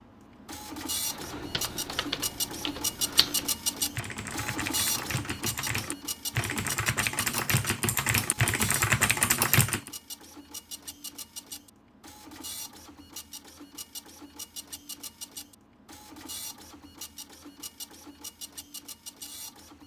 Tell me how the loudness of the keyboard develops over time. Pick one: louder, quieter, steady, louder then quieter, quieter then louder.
louder.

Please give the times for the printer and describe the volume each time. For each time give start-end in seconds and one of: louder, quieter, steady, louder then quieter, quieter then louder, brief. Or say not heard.
0.0-19.8 quieter.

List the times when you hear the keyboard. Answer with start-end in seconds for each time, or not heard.
1.1-9.9.